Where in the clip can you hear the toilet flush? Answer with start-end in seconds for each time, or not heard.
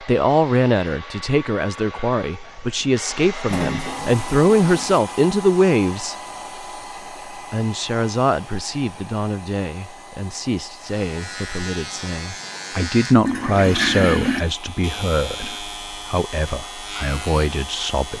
3.0-5.0, 13.2-14.4.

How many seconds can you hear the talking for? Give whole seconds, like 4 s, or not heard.
17 s.